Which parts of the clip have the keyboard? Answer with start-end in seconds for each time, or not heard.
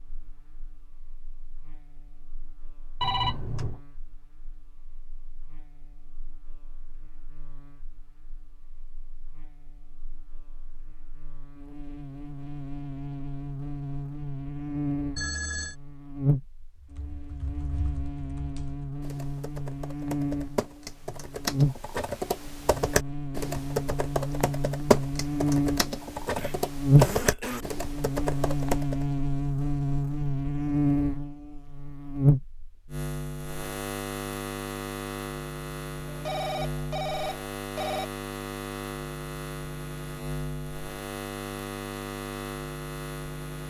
16.8-29.1.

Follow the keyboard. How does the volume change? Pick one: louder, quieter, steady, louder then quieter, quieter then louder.
louder.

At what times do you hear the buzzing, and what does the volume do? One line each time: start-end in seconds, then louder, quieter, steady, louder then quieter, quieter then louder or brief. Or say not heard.
0.0-43.6 louder then quieter.